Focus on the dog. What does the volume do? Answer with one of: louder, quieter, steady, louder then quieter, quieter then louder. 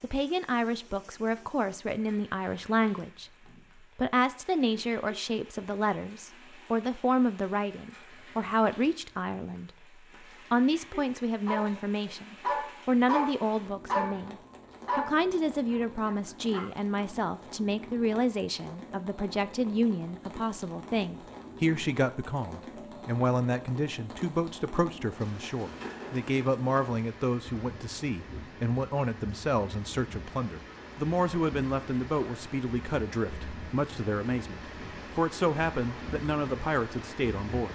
quieter.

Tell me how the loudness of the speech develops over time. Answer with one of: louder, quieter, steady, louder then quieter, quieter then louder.
steady.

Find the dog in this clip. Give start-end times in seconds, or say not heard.
11.4-16.9.